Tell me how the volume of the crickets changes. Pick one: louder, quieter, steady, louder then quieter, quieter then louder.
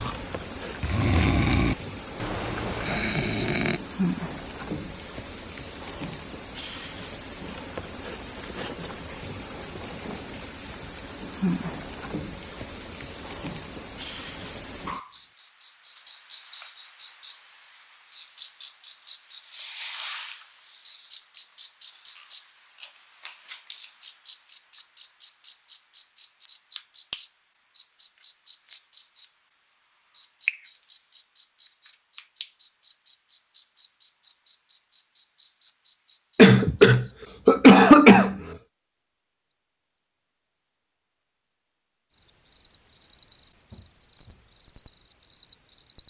quieter.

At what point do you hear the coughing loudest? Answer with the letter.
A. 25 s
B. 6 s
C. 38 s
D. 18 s
C.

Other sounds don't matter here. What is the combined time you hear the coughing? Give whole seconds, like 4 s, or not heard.
2 s.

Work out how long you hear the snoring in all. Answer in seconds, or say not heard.
4 s.